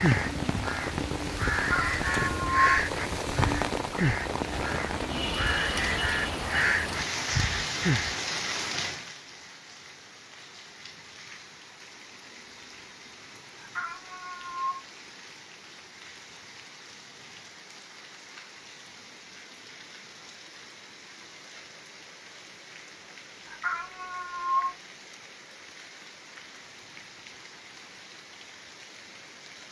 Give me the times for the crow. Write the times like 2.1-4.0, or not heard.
0.0-8.2.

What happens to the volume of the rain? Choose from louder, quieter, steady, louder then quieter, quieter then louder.
quieter.